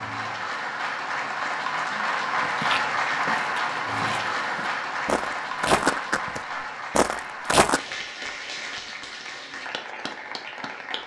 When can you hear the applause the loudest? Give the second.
3 s.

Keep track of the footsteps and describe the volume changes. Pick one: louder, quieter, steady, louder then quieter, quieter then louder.
louder.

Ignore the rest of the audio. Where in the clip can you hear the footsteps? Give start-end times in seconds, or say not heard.
2.5-7.8.